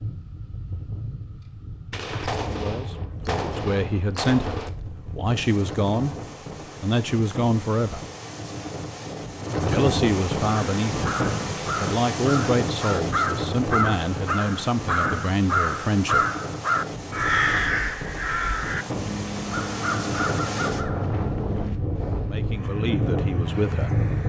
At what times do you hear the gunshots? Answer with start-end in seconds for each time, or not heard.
1.9-4.7.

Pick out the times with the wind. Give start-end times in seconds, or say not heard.
0.0-24.2.